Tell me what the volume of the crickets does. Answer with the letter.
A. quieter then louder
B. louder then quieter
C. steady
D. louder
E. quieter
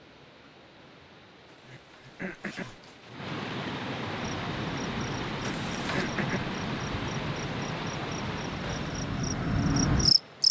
D.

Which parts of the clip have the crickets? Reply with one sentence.
The crickets can be heard from 4.2 to 10.4 s.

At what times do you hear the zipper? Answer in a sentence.
The zipper can be heard from 1.7 to 3.1 s and from 5.4 to 6.1 s.